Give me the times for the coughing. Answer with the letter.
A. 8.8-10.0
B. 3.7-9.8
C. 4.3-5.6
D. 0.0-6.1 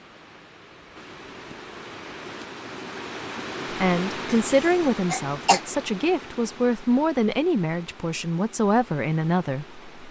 C.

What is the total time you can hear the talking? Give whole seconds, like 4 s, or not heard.
6 s.